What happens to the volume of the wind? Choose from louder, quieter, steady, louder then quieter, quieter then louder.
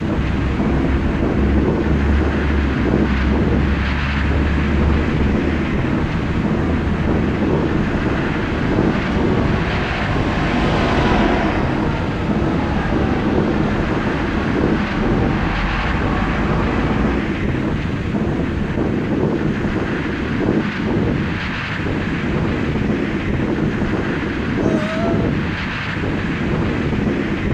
steady.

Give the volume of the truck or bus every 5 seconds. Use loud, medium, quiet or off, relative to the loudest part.
loud, loud, loud, loud, off, off.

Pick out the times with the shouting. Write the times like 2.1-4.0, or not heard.
24.6-25.3.